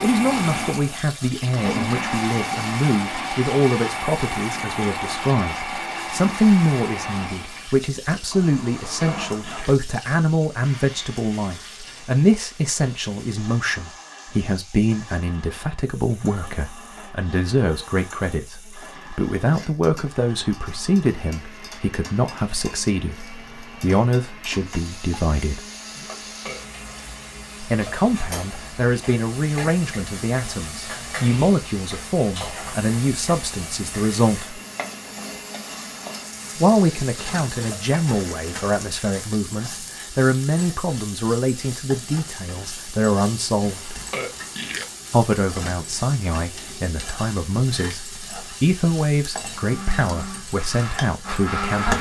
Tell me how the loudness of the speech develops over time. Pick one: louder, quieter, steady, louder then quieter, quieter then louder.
steady.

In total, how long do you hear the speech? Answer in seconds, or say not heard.
47 s.